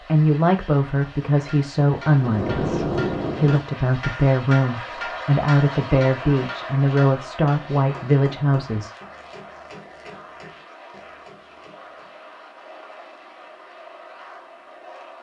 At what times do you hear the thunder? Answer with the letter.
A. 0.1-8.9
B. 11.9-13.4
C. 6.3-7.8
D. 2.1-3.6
D.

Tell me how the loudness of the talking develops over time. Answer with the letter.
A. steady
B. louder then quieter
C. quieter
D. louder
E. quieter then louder
A.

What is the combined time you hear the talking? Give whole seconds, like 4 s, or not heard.
9 s.